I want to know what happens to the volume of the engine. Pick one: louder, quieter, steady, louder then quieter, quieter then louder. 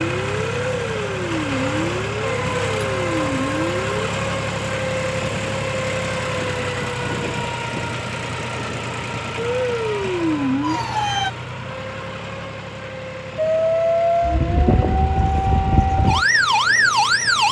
quieter.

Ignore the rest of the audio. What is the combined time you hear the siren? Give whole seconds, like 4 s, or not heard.
10 s.